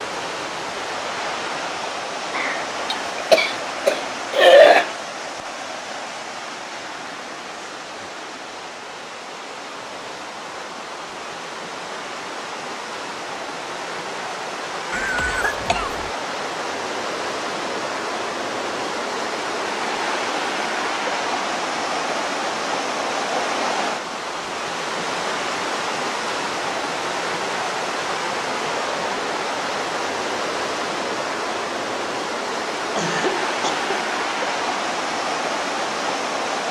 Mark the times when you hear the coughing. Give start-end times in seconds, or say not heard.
2.3-5.0, 14.9-16.1, 33.0-33.9.